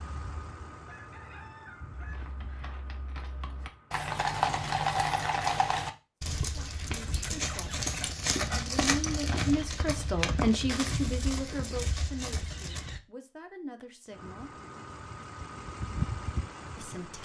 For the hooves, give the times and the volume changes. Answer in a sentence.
The hooves can be heard from 1.9 to 13.0 s, getting louder then quieter.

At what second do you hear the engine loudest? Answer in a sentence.
The volume of the engine peaks at 16 seconds.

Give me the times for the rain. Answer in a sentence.
You can't hear the rain here.